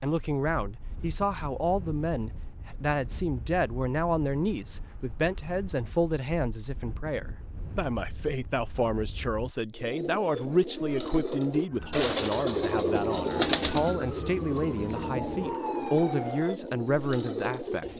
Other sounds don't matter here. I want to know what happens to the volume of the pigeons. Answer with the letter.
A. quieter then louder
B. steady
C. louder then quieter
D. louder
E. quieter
C.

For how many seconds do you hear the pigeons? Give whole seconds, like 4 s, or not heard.
8 s.